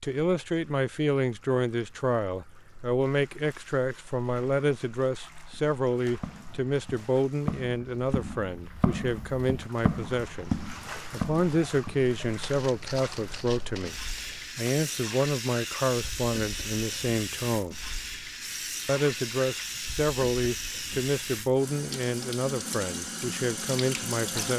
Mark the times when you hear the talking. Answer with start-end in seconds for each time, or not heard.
0.0-13.9, 14.6-17.8, 18.9-24.5.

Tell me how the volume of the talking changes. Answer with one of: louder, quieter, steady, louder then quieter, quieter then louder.
steady.